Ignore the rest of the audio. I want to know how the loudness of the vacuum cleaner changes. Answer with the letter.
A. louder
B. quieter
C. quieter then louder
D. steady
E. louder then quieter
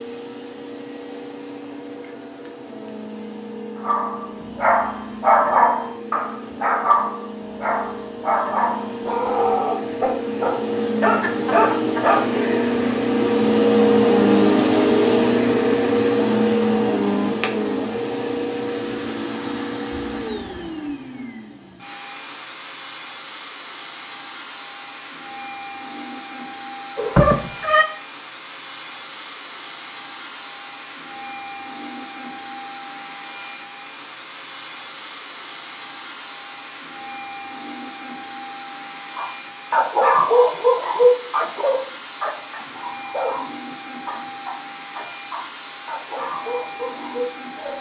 E.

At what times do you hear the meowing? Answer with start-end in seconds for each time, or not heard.
26.9-27.9.